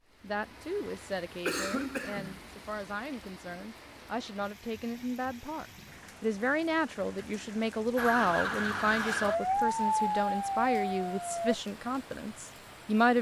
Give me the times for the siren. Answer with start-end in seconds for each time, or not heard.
8.0-11.6.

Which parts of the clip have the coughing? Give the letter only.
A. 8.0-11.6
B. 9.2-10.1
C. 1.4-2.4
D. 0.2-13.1
C.